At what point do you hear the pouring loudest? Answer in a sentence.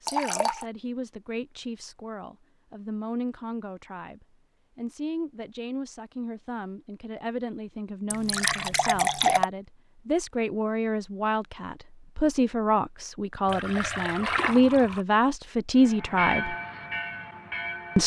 The loudest moment of the pouring is at 9 seconds.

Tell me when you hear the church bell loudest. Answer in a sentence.
The volume of the church bell peaks at 16 seconds.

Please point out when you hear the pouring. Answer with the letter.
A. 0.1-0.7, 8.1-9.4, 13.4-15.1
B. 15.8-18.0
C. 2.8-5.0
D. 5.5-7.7
A.